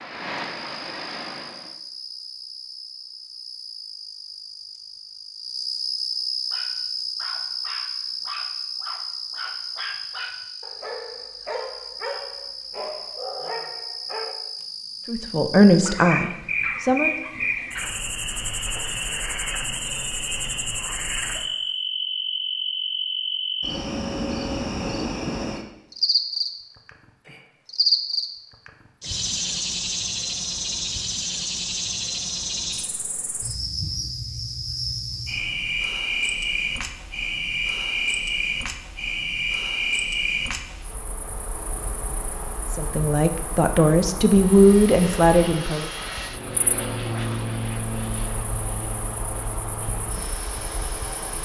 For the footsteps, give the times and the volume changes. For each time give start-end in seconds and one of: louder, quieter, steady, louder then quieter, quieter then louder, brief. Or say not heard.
not heard.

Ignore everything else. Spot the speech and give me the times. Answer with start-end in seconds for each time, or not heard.
15.1-17.1, 42.7-45.9.